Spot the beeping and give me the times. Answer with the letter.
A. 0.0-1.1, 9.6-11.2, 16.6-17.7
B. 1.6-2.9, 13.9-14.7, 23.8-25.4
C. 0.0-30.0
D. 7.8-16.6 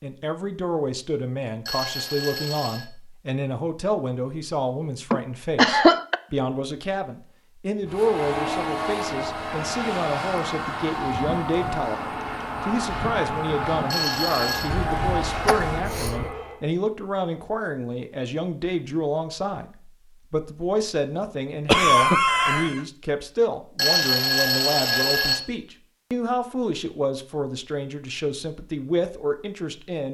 B.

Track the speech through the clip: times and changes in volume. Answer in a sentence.
The speech can be heard from 0.0 to 30.0 s, at a steady volume.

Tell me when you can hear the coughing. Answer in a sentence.
The coughing can be heard from 5.1 to 6.2 s, from 14.7 to 16.3 s and from 21.6 to 22.8 s.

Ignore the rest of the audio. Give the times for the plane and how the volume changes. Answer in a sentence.
The plane can be heard from 7.8 to 16.6 s, at a steady volume.